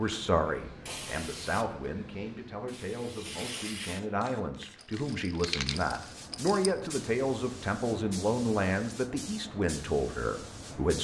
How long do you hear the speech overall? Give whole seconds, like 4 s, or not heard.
11 s.